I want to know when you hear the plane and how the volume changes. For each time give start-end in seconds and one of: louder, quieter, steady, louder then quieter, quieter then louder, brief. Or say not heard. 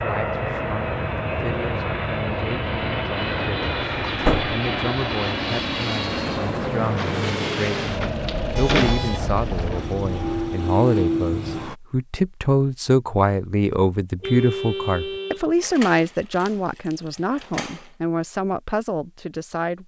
0.0-11.8 steady.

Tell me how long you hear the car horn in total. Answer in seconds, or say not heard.
4 s.